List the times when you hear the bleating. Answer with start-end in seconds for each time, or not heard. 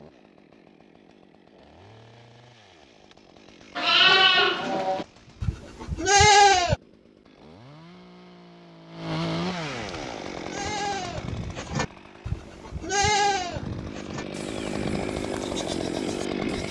3.8-6.8, 10.3-16.6.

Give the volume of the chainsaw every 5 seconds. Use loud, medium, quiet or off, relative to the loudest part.
quiet, medium, medium, loud.